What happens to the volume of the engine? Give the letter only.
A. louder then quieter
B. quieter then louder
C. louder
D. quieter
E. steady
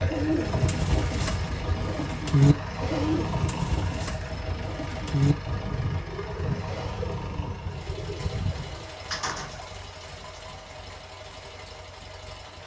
D.